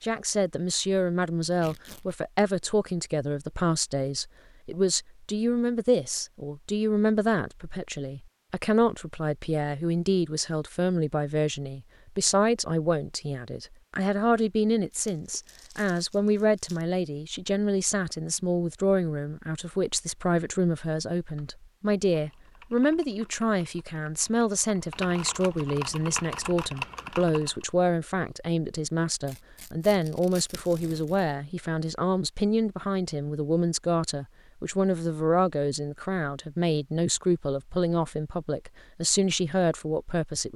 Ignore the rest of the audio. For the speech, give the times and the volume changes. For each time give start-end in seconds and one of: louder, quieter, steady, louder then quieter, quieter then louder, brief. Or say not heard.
0.0-40.5 steady.